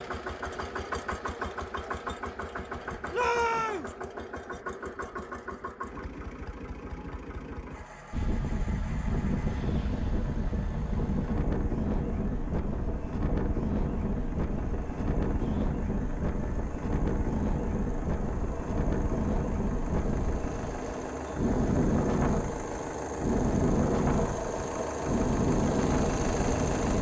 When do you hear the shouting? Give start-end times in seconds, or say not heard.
3.1-4.0.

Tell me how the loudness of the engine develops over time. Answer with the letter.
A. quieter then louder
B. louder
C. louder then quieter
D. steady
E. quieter
A.